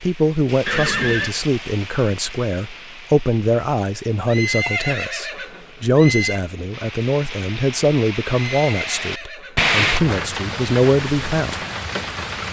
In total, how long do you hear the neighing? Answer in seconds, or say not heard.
4 s.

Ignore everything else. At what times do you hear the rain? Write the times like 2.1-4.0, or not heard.
0.0-12.4.